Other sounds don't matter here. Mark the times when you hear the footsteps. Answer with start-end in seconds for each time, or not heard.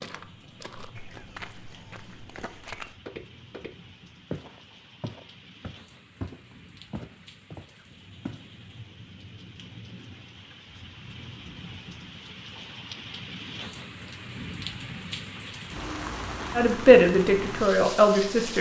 0.0-8.4.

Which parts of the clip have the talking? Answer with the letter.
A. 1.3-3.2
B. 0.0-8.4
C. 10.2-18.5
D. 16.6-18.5
D.